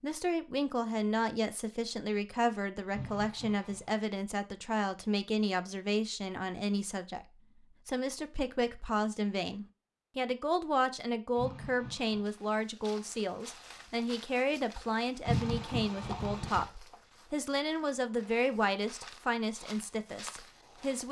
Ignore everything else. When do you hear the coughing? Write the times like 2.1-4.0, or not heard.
2.9-3.9, 11.3-12.2, 15.2-16.6.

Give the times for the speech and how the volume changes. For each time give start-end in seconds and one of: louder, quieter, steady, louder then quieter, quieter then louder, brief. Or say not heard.
0.0-21.0 steady.